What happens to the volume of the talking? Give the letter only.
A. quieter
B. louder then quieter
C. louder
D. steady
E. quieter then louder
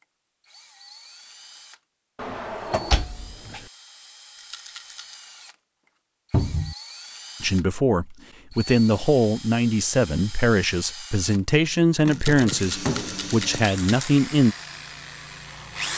D.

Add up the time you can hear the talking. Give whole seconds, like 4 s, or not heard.
7 s.